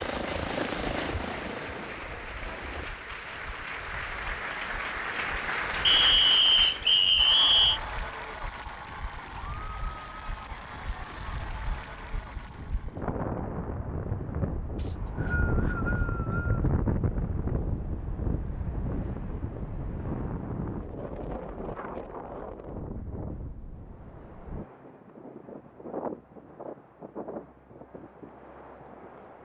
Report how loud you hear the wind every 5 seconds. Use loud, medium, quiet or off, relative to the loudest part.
quiet, quiet, medium, loud, medium, medium.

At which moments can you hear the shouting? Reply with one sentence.
The shouting can't be heard in this clip.